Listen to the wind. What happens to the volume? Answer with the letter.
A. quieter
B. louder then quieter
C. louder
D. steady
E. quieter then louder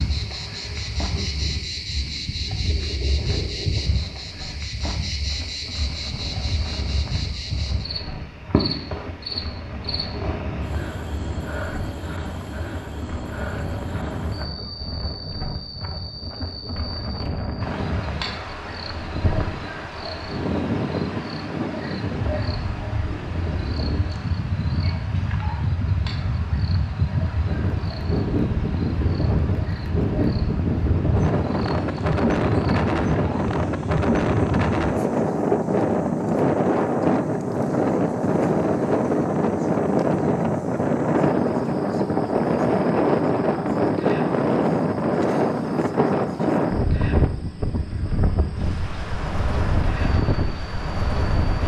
C.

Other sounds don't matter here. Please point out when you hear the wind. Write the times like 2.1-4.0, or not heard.
0.0-51.6.